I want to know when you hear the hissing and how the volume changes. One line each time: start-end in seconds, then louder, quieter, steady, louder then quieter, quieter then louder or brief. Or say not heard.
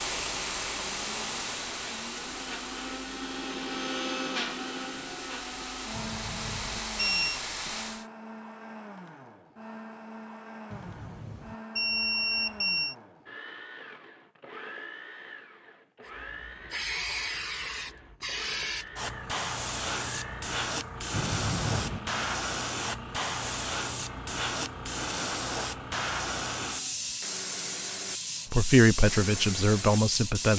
0.0-8.1 quieter then louder
16.1-30.5 steady.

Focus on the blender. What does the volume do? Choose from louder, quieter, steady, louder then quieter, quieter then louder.
quieter.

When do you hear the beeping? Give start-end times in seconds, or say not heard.
5.9-7.4, 10.7-12.9, 21.1-22.0.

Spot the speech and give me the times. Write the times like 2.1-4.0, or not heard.
28.5-30.5.